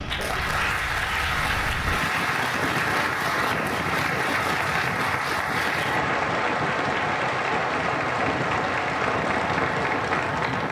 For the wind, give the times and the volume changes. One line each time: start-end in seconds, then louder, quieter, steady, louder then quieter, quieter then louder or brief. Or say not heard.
0.0-10.6 louder.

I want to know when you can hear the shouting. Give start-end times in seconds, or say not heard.
not heard.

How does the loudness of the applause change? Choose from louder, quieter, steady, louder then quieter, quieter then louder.
steady.